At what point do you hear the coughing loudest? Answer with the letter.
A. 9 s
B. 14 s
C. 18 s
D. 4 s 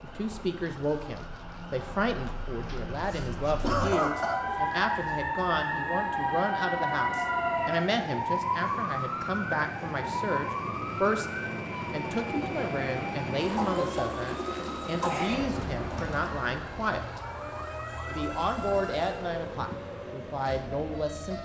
D.